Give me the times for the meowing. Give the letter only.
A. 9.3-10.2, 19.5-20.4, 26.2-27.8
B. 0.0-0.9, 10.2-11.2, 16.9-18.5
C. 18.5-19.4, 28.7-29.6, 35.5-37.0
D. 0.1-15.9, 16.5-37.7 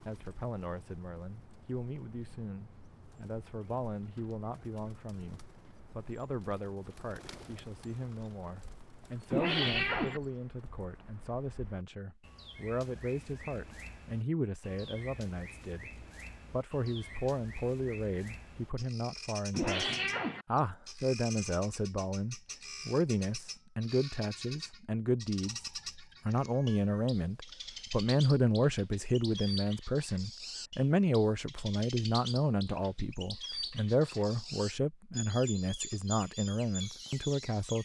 A.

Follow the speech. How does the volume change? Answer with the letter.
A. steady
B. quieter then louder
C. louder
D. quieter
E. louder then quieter
C.